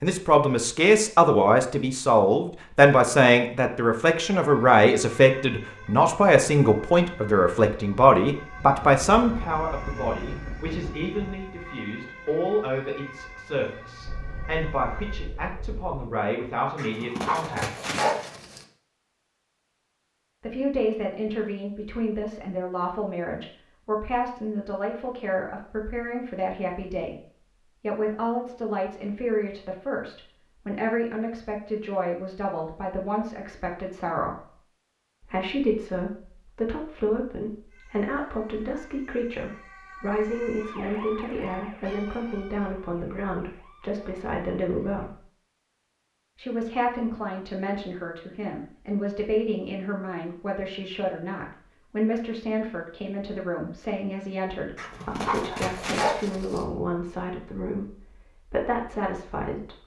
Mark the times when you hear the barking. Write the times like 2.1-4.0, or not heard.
16.8-18.6, 54.8-56.6.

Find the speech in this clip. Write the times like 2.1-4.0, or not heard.
0.0-17.8, 20.4-34.5, 35.2-45.2, 46.4-59.8.